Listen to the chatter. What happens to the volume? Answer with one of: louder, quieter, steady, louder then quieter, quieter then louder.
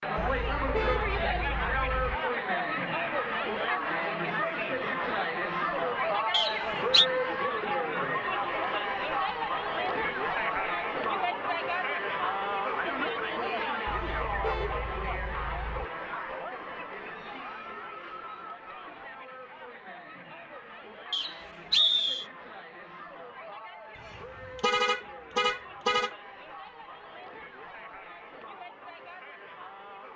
quieter.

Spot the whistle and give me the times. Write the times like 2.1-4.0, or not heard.
6.3-7.0, 21.1-22.2.